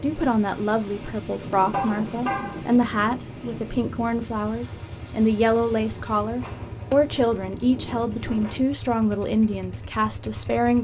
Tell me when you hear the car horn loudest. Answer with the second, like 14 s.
2 s.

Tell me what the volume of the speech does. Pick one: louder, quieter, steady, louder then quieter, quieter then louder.
steady.